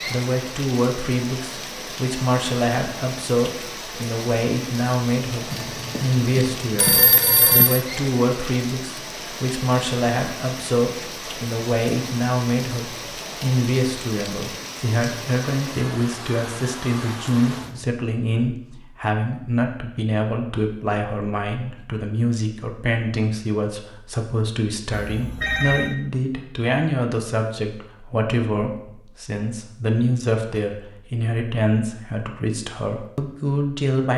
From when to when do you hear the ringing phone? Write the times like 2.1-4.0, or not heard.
5.5-7.8, 24.9-25.9.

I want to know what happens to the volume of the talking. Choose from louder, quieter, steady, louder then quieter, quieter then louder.
steady.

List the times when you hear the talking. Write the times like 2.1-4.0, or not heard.
0.1-34.1.